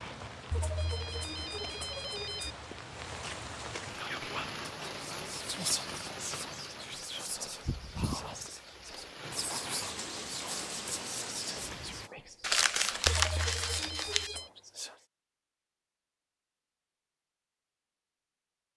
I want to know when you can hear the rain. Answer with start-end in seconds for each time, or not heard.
0.0-12.1.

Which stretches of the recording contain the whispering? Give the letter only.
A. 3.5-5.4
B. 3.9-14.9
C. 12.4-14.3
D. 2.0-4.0
B.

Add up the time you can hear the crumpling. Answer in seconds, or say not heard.
2 s.